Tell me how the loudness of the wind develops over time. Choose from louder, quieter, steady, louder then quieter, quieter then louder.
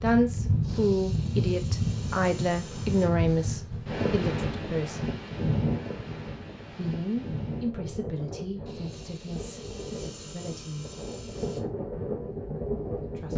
quieter then louder.